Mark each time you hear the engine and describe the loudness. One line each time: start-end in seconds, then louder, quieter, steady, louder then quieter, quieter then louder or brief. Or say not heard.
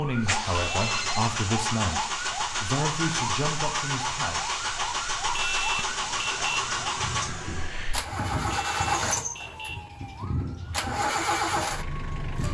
0.0-12.4 steady.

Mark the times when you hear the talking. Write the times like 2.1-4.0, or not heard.
0.0-4.6.